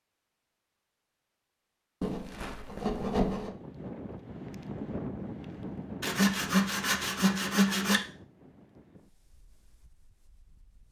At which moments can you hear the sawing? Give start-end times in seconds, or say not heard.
2.0-3.5, 6.0-8.0.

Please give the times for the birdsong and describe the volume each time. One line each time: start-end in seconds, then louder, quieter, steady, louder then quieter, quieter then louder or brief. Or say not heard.
not heard.